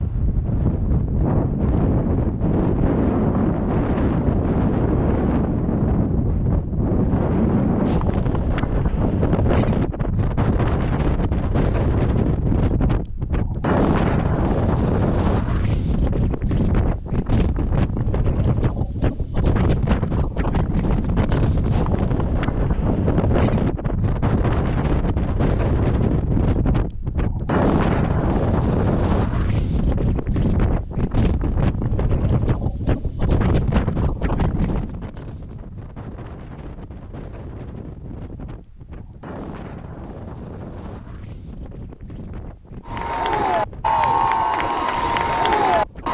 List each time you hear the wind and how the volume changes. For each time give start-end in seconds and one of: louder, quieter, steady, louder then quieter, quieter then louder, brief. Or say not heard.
0.0-46.0 quieter.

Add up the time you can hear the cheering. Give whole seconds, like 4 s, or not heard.
3 s.